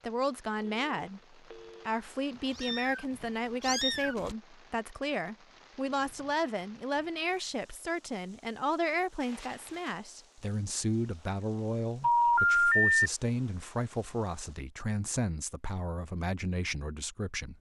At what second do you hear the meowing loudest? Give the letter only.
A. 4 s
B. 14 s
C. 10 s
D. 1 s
A.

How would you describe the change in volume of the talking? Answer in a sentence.
The loudness of the talking stays about the same.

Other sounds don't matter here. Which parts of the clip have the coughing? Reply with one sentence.
You can't hear the coughing here.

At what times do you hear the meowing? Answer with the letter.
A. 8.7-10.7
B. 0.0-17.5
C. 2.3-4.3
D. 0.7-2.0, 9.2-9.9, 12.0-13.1
C.